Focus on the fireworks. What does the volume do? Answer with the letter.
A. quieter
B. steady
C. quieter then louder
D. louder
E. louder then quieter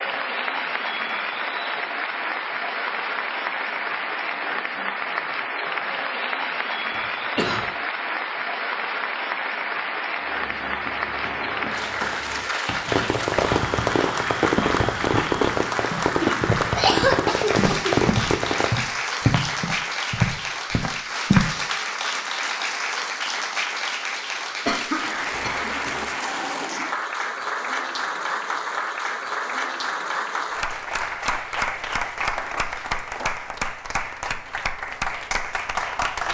B.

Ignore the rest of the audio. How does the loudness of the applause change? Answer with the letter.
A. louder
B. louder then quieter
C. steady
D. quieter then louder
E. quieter
C.